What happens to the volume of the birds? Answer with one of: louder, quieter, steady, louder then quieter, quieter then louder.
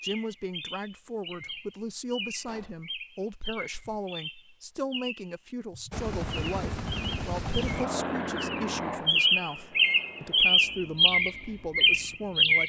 louder.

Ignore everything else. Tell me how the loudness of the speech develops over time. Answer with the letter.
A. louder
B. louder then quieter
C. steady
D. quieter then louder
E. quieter
C.